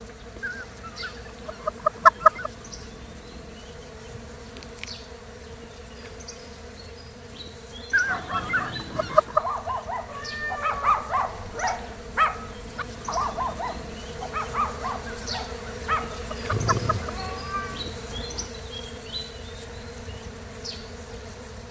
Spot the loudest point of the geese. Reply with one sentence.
The loudest moment of the geese is at 2 seconds.